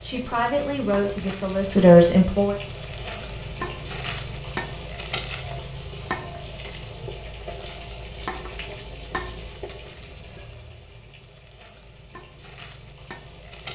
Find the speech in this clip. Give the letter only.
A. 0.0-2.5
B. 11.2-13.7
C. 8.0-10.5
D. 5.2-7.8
A.